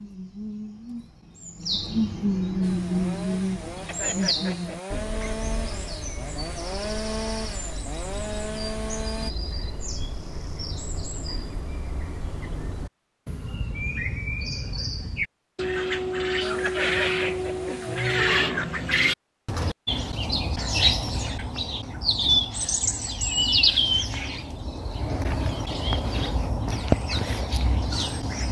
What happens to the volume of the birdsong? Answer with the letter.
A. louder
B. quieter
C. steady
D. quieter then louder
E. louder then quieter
D.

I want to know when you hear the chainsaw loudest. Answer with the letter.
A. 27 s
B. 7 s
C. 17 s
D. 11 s
B.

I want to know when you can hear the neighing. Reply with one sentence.
You can hear the neighing from 3.9 to 5.3 s and from 16.6 to 18.6 s.